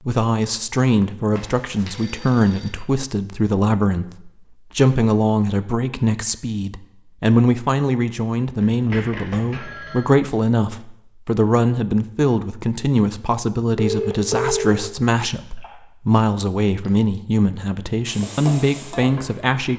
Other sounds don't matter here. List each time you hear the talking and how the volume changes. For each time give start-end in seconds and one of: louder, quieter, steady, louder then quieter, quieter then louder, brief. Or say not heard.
0.1-19.7 steady.